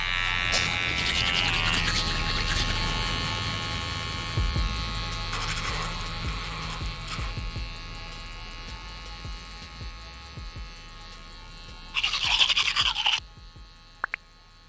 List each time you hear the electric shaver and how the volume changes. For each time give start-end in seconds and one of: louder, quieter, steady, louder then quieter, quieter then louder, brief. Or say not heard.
0.0-14.6 quieter.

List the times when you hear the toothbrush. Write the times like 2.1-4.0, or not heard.
0.5-2.9, 5.3-7.3, 11.9-13.2.